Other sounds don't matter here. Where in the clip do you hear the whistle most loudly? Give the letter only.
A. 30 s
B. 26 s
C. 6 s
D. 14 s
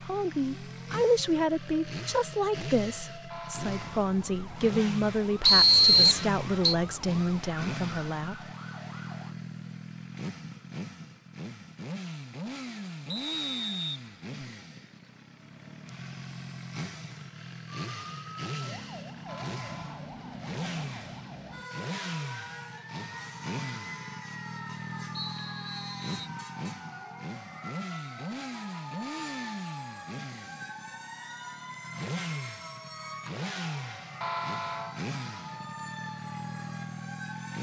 C.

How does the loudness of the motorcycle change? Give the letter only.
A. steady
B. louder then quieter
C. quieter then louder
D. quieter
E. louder
A.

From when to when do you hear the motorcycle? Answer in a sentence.
The motorcycle can be heard from 0.0 to 37.5 s.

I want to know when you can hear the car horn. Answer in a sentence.
The car horn can be heard from 3.3 to 4.1 s, from 19.2 to 20.1 s and from 34.2 to 35.0 s.